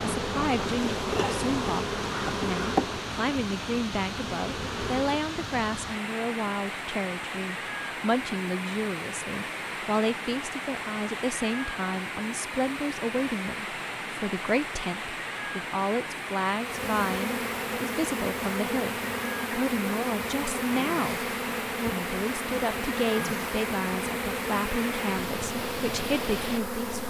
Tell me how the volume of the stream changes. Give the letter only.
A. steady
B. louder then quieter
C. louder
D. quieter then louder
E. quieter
A.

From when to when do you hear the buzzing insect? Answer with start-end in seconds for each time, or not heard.
0.0-5.2, 16.6-27.0.